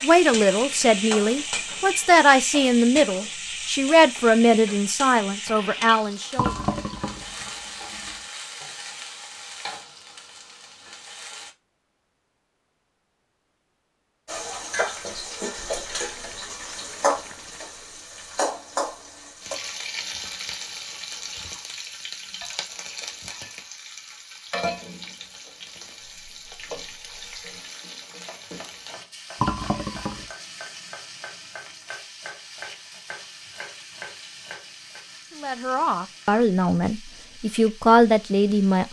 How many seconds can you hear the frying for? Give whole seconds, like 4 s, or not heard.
36 s.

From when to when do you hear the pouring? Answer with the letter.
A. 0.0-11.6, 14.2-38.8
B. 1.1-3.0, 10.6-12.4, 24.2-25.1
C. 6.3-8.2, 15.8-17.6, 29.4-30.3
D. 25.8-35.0
C.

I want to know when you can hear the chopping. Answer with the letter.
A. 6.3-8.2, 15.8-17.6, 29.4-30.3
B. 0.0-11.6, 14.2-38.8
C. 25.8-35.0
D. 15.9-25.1
C.